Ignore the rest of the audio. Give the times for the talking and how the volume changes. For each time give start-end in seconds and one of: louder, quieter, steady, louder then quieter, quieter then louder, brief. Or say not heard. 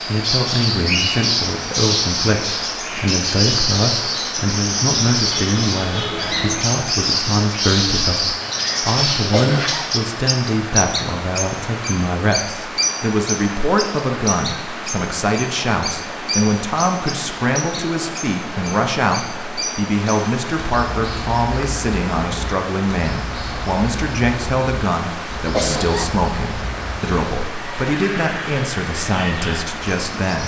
0.1-30.4 steady.